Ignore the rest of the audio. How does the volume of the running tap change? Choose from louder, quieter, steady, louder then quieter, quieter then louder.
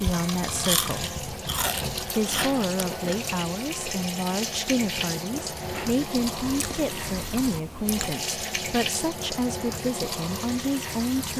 steady.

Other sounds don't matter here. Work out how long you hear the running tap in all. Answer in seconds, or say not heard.
11 s.